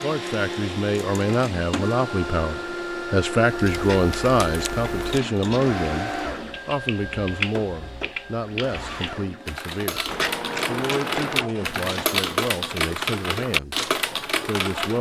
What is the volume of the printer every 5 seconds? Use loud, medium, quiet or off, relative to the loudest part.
loud, loud, medium.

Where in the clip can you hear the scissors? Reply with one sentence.
The scissors can be heard from 3.8 to 5.3 s and from 10.1 to 11.5 s.